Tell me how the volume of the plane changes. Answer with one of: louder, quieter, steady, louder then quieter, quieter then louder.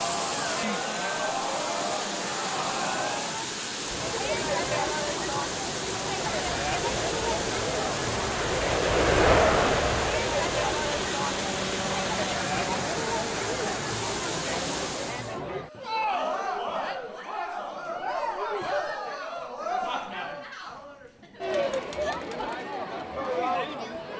louder then quieter.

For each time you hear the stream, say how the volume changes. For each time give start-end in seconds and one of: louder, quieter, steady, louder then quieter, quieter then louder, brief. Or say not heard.
0.0-15.4 steady.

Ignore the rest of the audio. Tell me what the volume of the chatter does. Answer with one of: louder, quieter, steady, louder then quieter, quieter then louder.
steady.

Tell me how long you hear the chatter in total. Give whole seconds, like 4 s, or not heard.
24 s.